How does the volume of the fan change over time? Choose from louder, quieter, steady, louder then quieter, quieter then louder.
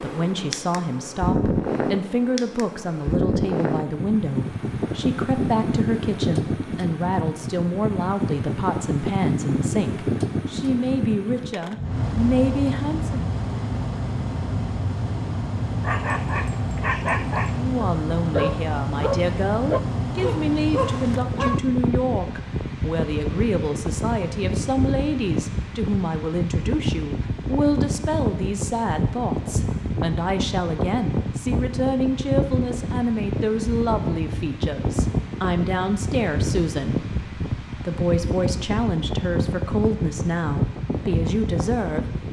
steady.